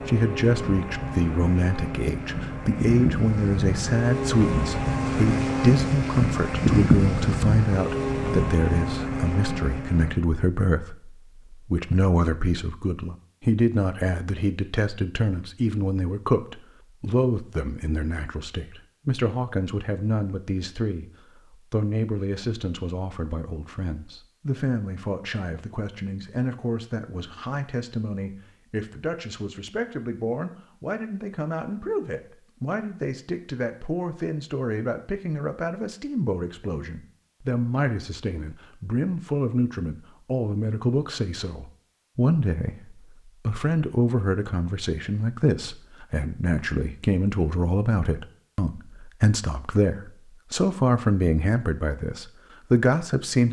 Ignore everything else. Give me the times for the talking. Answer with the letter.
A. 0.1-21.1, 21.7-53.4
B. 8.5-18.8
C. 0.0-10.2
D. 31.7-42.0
A.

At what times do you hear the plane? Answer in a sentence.
The plane can be heard from 0.0 to 10.2 s.